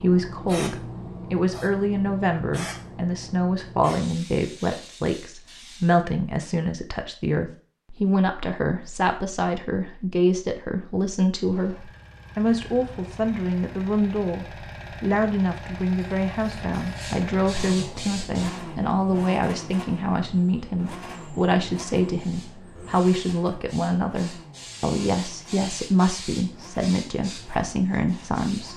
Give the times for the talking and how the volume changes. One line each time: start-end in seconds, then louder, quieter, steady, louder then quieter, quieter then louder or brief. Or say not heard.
0.0-28.7 steady.